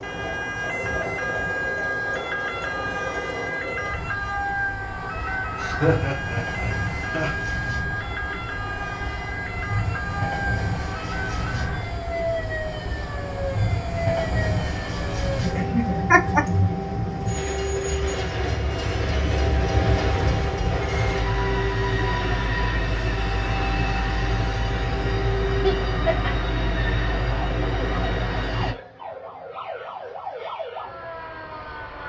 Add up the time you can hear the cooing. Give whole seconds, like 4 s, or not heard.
not heard.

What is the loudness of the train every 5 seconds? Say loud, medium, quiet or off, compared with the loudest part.
medium, medium, loud, loud, loud, loud, off.